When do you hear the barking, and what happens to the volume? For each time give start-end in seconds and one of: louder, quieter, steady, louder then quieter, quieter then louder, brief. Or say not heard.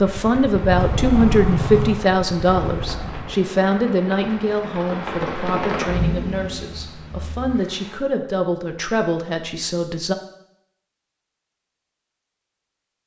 not heard.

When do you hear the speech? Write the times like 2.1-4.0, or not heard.
0.0-10.2.